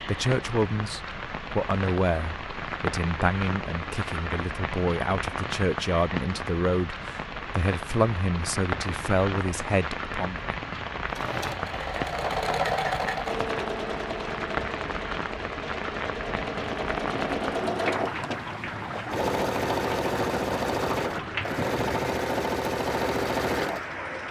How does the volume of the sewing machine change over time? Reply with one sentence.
The volume of the sewing machine goes down, then up.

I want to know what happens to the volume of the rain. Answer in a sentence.
The volume of the rain stays about the same.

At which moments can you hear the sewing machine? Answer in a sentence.
You can hear the sewing machine from 11.1 to 24.2 s.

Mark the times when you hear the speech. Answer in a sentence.
You can hear the speech from 0.0 to 10.4 s.